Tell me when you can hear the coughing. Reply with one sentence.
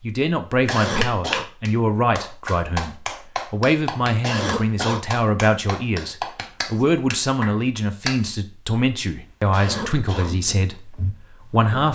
The coughing can be heard from 0.7 to 1.4 s, from 4.2 to 5.0 s and from 9.5 to 10.3 s.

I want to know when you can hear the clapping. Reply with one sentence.
The clapping can be heard from 0.7 to 8.3 s.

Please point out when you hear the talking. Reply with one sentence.
The talking can be heard from 0.0 to 11.9 s.